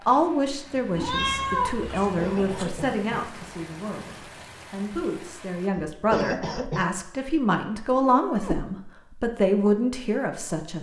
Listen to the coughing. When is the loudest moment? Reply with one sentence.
The loudest moment of the coughing is at 6 seconds.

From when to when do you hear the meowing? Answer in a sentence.
The meowing can be heard from 0.9 to 2.7 s and from 8.1 to 8.7 s.